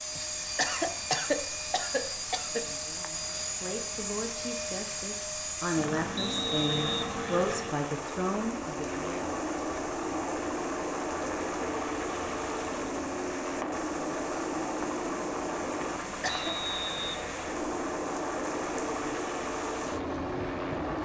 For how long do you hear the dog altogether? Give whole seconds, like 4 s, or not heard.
not heard.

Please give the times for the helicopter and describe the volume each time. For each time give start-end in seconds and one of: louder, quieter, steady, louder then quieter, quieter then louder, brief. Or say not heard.
0.0-21.0 steady.